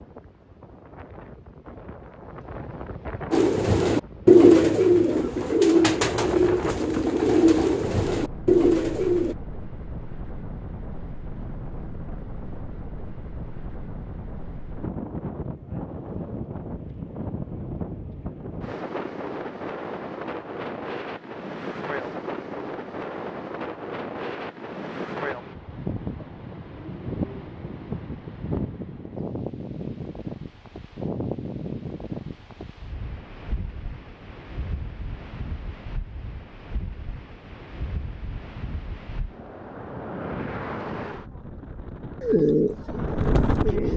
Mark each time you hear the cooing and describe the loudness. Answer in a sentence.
You can hear the cooing from 3.3 to 9.3 s, getting quieter; and briefly from 42.2 to 43.9 s.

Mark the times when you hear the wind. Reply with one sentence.
The wind can be heard from 0.0 to 43.9 s.